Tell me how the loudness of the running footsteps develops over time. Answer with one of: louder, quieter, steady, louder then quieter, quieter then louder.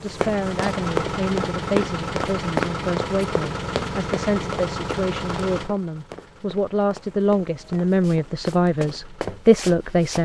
quieter then louder.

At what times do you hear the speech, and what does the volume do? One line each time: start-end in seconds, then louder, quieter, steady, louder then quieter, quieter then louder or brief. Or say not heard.
0.0-10.1 louder.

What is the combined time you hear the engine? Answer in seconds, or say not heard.
10 s.